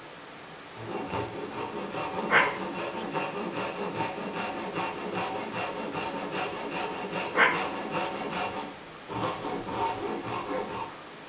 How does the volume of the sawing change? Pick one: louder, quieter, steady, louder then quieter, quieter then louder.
steady.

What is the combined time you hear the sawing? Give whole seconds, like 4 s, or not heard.
10 s.